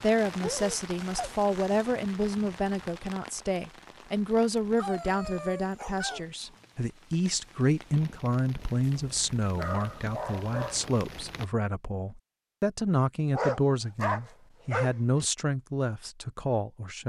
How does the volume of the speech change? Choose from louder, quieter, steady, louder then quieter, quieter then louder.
steady.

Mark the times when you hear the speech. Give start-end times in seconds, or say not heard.
0.0-17.0.